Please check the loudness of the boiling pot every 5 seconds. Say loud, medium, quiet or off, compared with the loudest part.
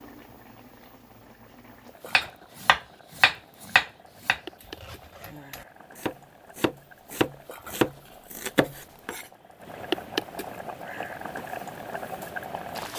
quiet, medium, loud.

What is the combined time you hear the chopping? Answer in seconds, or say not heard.
7 s.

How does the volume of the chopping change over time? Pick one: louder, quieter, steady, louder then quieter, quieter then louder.
quieter then louder.